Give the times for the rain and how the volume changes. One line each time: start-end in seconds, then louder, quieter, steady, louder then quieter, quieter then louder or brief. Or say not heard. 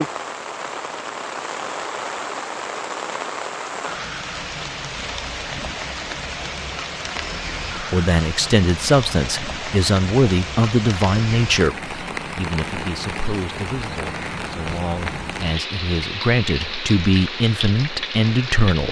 0.0-18.8 steady.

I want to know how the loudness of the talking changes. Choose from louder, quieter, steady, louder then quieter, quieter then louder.
quieter then louder.